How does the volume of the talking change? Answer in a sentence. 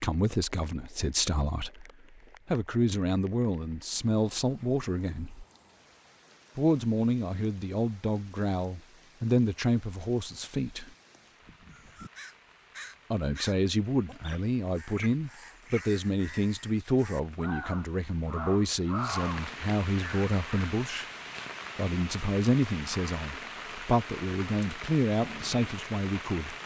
The volume of the talking stays about the same.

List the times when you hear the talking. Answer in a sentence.
You can hear the talking from 0.0 to 5.5 s, from 6.5 to 10.9 s, from 13.1 to 21.1 s and from 21.8 to 26.6 s.